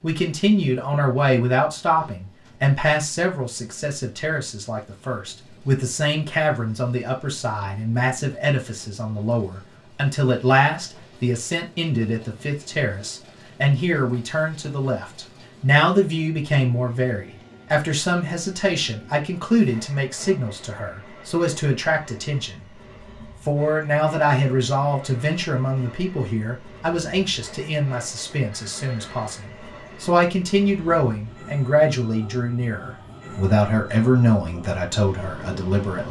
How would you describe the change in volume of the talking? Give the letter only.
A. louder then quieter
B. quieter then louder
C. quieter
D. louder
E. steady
E.